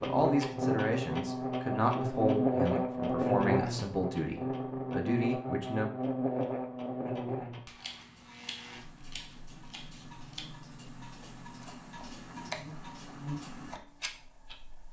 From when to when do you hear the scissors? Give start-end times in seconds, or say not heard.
7.8-10.5.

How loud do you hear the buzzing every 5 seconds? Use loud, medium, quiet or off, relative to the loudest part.
loud, medium, quiet.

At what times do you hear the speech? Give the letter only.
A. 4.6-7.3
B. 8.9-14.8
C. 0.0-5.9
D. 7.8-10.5
C.